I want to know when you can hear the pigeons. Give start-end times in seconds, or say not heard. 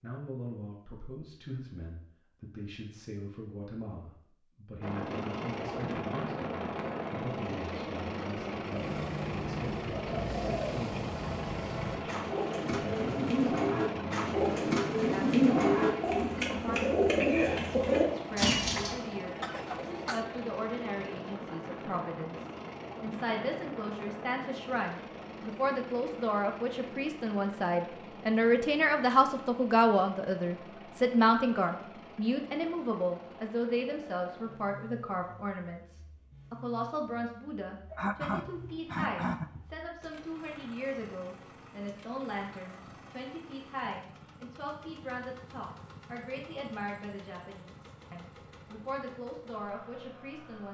8.7-18.9.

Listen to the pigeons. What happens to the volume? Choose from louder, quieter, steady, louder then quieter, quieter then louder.
louder.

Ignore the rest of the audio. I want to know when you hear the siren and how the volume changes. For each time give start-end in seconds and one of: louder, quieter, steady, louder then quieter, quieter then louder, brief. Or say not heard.
not heard.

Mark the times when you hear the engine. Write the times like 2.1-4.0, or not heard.
4.8-50.6.